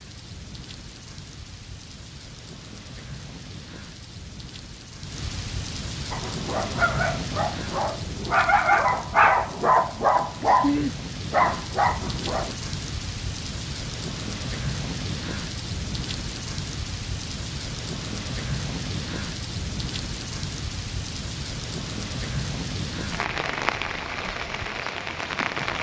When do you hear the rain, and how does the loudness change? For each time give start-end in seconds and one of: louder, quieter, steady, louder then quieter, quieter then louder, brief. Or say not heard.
0.0-25.7 louder.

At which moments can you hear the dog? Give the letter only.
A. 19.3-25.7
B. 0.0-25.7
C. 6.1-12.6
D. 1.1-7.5
C.